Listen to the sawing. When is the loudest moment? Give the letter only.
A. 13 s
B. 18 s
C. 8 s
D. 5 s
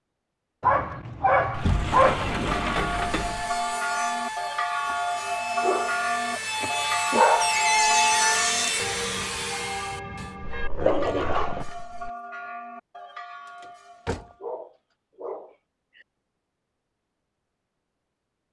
C.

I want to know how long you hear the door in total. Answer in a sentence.
The door can be heard for 4 seconds in total.